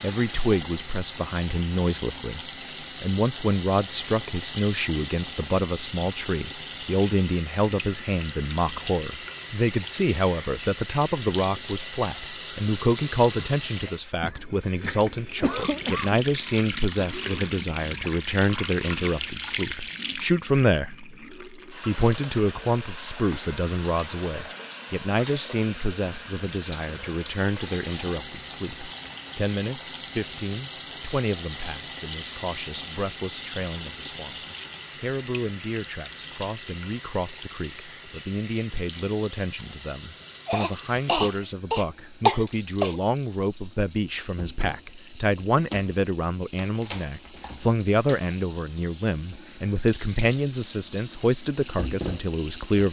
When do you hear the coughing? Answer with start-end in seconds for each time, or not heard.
14.2-16.2, 40.5-43.0.